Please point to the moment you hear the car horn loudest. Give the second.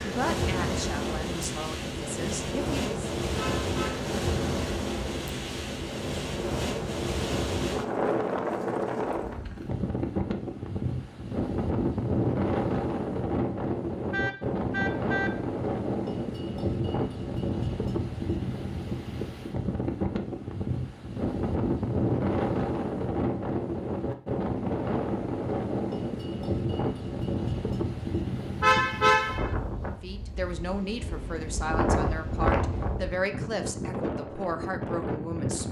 29 s.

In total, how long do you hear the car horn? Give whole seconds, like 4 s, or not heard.
3 s.